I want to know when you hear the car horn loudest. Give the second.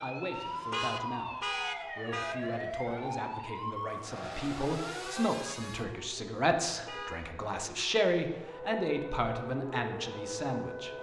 2 s.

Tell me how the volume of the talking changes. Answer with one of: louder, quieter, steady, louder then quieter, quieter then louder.
louder.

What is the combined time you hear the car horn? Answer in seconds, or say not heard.
3 s.